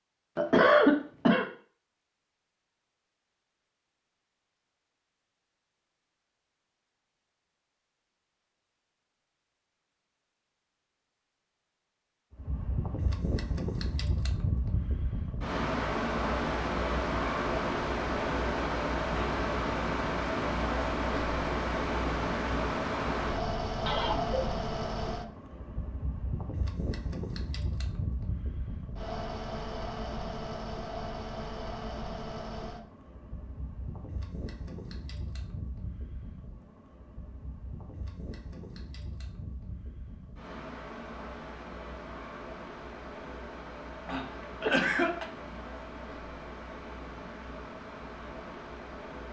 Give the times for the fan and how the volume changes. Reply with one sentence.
The fan can be heard from 12.3 to 49.2 s, getting quieter.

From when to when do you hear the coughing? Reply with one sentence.
The coughing can be heard from 0.3 to 1.4 s, from 23.9 to 24.4 s and from 44.0 to 45.2 s.